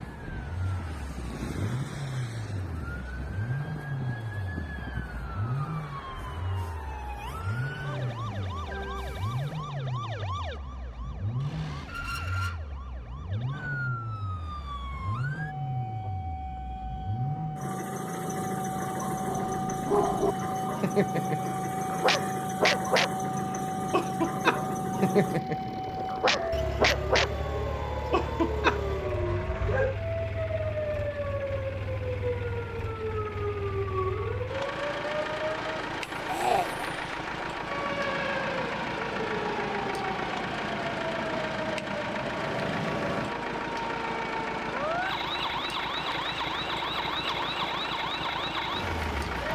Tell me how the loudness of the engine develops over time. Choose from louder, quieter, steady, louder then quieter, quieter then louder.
steady.